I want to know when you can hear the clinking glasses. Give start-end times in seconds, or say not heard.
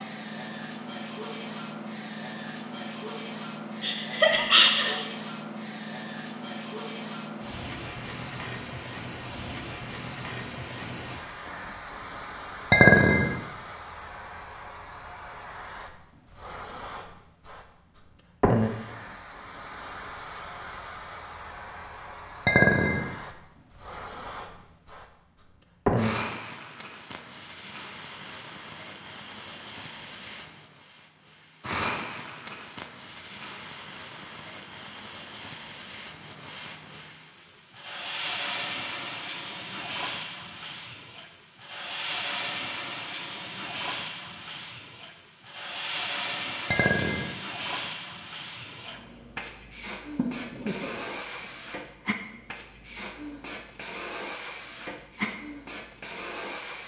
12.7-13.3, 22.4-23.1, 46.7-47.3.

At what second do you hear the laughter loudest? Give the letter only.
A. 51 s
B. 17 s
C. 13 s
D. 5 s
D.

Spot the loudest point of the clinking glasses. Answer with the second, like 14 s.
13 s.